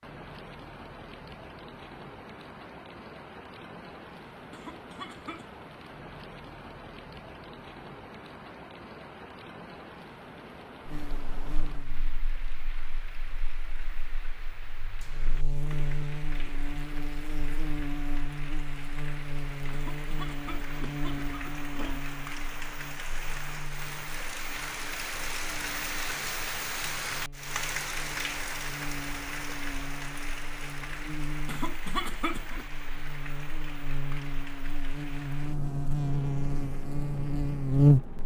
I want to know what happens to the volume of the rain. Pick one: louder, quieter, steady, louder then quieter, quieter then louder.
louder then quieter.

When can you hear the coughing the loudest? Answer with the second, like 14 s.
32 s.